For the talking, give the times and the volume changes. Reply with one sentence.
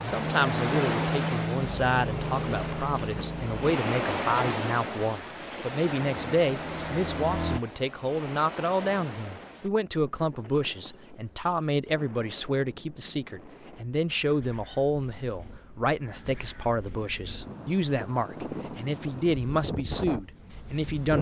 The talking can be heard from 0.1 to 21.1 s, at a steady volume.